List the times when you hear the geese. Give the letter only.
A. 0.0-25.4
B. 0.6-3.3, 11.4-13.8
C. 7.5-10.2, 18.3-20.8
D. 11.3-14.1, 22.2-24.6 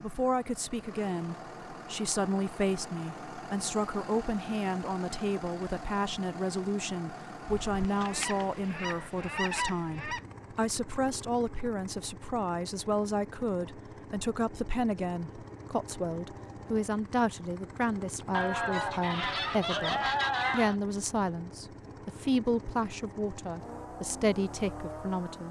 C.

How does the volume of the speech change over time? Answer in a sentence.
The loudness of the speech stays about the same.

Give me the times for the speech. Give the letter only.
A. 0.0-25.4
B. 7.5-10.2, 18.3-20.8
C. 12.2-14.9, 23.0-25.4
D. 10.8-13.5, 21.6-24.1
A.